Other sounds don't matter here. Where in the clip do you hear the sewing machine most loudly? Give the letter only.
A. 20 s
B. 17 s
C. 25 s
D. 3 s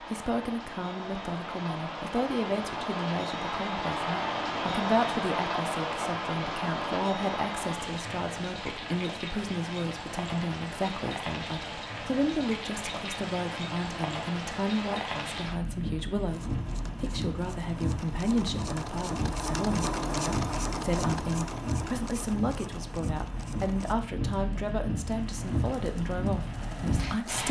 A.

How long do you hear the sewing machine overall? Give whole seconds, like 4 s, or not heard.
11 s.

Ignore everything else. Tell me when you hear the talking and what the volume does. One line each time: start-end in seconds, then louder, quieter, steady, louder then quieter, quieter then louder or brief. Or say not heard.
0.0-27.4 steady.